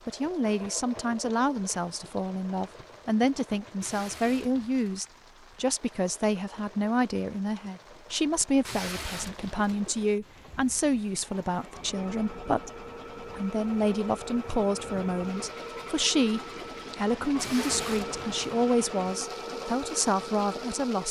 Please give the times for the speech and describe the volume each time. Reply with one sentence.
The speech can be heard from 0.1 to 21.0 s, at a steady volume.